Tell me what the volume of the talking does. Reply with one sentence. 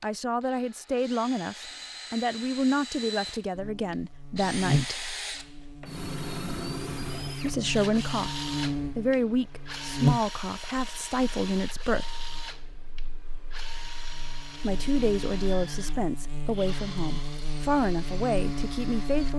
The loudness of the talking stays about the same.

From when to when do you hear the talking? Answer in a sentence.
You can hear the talking from 0.0 to 5.0 s, from 7.4 to 12.2 s and from 14.6 to 19.3 s.